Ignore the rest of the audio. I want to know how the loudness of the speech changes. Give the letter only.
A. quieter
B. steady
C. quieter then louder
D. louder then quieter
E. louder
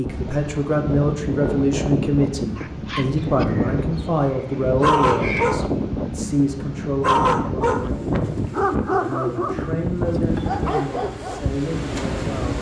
A.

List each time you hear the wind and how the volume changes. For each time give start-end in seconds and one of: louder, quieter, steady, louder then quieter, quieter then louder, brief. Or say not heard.
0.0-12.5 steady.